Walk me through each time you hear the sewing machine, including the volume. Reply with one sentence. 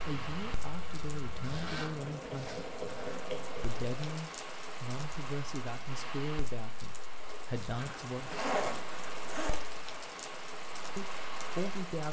The sewing machine can be heard from 0.0 to 4.2 s, getting louder.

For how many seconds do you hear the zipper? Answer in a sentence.
The zipper can be heard for 4 seconds in total.